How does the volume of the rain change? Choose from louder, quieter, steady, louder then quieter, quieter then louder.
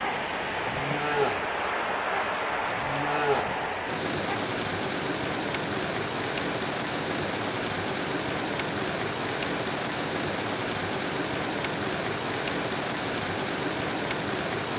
steady.